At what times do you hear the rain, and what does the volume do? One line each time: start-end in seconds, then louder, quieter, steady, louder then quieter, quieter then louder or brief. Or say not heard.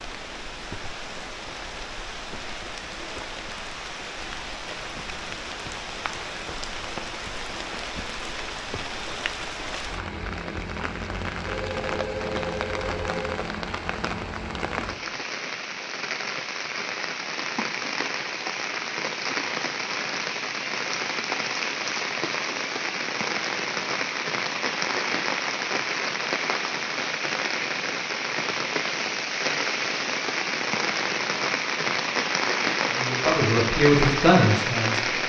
0.0-35.2 louder.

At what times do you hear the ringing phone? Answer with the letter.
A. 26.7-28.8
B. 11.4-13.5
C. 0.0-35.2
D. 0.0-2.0
B.